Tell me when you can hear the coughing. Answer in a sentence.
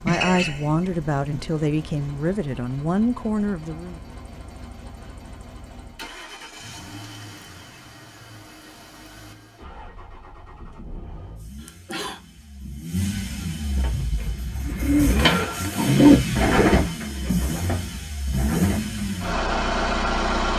The coughing can be heard from 0.1 to 0.8 s and from 11.6 to 12.2 s.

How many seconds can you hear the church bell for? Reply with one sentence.
You can't hear the church bell here.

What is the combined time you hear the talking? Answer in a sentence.
The talking can be heard for 4 seconds in total.